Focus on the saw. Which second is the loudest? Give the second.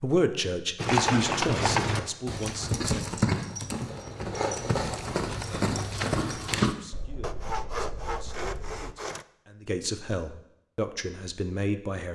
8 s.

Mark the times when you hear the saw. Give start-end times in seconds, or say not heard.
7.2-9.2.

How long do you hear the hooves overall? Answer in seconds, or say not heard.
6 s.